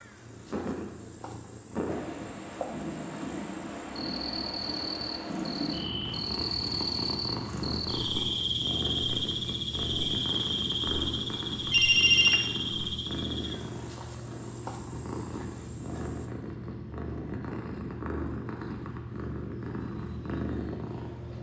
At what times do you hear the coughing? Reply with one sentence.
You can't hear the coughing here.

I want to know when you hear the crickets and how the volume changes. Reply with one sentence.
You can hear the crickets from 0.0 to 16.4 s, getting louder then quieter.